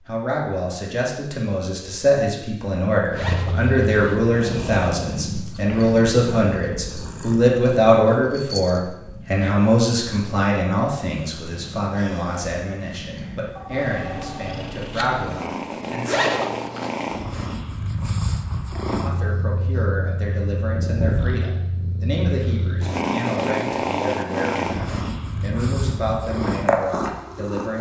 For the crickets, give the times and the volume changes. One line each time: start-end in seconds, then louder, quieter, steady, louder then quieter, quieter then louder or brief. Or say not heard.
not heard.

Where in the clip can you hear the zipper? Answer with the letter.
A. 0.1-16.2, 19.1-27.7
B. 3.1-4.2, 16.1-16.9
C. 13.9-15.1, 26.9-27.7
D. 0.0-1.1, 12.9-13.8
B.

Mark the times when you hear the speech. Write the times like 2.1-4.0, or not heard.
0.1-16.2, 19.1-27.7.